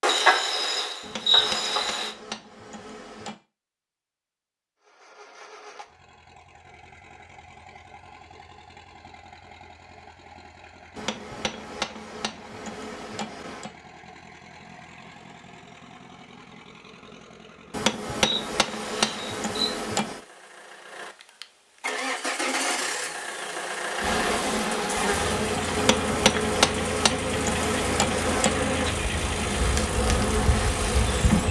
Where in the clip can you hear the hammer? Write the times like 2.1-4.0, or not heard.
1.0-3.4, 10.9-13.7, 17.7-20.2, 25.8-28.6.